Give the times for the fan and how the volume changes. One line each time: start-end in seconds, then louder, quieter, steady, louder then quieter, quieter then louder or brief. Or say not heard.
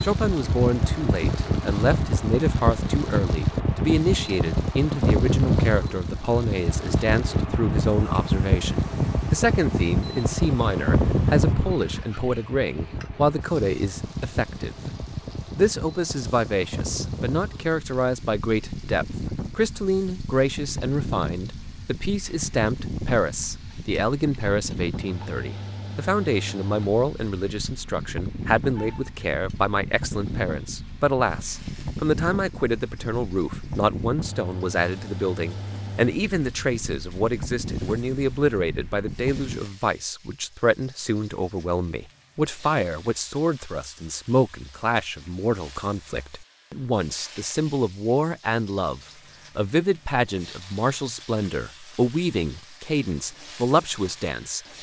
0.0-39.6 quieter.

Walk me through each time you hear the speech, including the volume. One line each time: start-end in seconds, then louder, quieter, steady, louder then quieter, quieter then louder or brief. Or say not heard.
0.0-14.8 steady
15.6-54.6 steady.